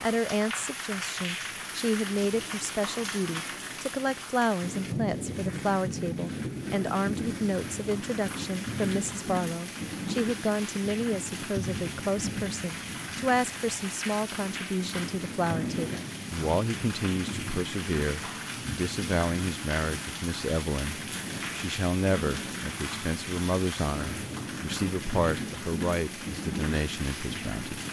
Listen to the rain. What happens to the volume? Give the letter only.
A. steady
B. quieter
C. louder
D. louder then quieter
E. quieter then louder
A.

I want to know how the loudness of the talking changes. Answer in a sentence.
The loudness of the talking stays about the same.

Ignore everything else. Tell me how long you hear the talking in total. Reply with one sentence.
You can hear the talking for 28 seconds altogether.